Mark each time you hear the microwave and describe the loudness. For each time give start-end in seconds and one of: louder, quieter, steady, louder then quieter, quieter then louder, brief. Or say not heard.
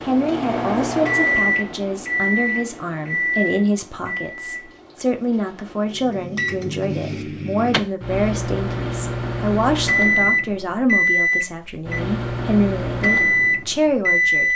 0.0-14.5 quieter then louder.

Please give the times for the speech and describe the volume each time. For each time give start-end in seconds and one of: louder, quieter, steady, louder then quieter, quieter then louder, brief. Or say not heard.
0.0-14.5 steady.